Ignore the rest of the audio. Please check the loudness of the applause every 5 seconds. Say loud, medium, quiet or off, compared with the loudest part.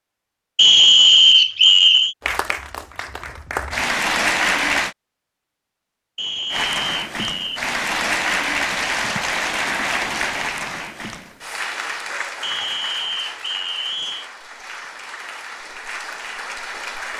loud, loud, medium, medium.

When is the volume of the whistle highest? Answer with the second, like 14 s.
1 s.